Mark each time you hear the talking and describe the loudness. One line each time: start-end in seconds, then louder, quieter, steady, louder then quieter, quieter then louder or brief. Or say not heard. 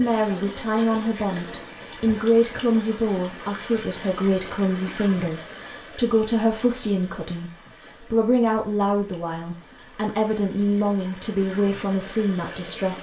0.0-12.9 steady.